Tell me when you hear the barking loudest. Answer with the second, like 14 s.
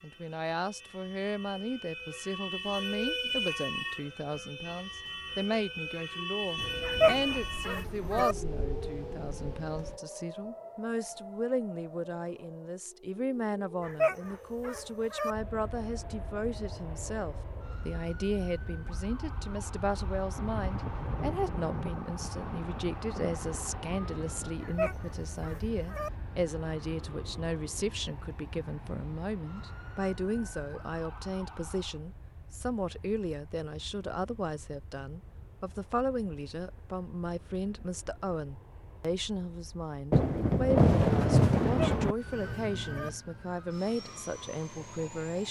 7 s.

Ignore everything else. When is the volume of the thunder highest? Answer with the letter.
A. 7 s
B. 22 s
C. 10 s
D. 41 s
D.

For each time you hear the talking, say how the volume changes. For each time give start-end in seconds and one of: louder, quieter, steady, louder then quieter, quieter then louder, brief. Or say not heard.
0.0-45.4 steady.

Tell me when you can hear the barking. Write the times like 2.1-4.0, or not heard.
6.8-8.3, 13.8-15.3, 24.6-26.1, 41.6-43.1.